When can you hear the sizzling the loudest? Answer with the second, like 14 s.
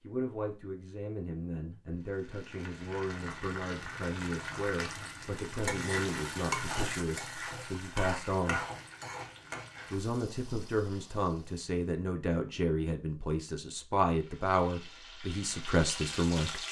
6 s.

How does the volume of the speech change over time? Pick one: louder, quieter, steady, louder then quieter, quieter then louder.
louder.